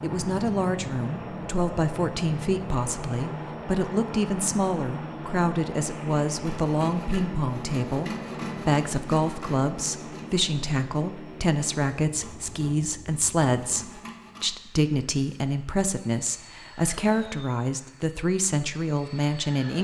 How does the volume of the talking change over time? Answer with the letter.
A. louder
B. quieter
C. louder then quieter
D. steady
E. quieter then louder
D.